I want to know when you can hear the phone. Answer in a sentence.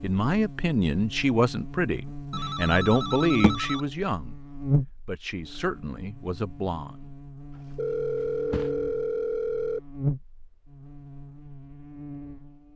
The phone can be heard from 2.3 to 3.9 s and from 7.8 to 9.8 s.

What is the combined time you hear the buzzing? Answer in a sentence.
You can hear the buzzing for 13 seconds altogether.